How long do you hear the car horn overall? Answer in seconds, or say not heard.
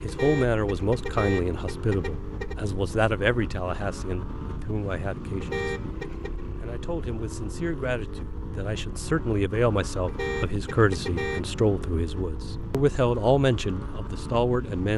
5 s.